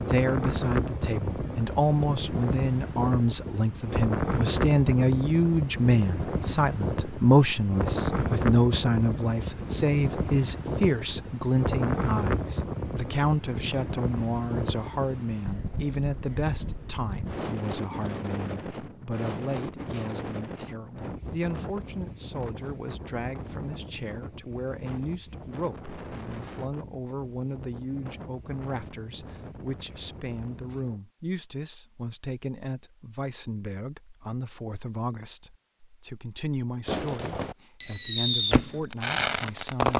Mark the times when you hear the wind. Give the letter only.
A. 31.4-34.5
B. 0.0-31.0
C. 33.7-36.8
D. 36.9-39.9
B.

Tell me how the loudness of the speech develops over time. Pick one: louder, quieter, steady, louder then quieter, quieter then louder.
quieter.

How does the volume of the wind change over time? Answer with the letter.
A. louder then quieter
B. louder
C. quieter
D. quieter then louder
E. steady
C.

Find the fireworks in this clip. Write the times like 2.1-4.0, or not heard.
36.9-39.9.